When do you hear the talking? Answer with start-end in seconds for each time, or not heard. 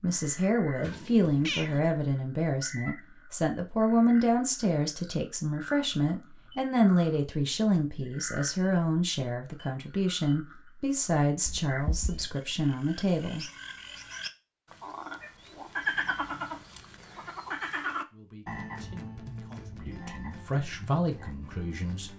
0.0-13.4, 18.1-22.1.